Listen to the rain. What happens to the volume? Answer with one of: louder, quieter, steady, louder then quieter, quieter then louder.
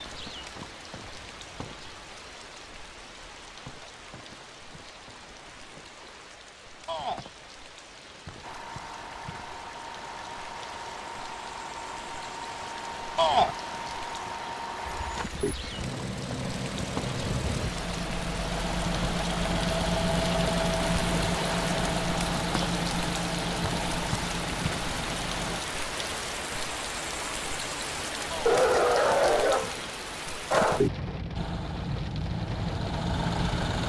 louder.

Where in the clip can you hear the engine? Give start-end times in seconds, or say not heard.
8.4-25.6, 31.4-33.8.